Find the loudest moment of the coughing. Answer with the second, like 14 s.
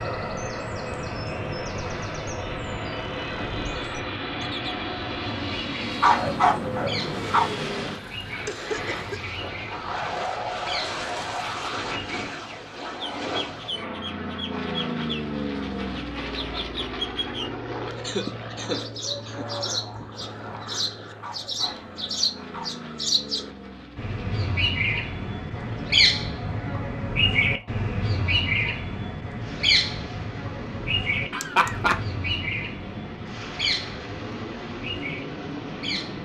32 s.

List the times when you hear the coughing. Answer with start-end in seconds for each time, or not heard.
8.0-9.3, 17.9-19.4, 31.3-32.0.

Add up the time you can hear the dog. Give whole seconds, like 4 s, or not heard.
3 s.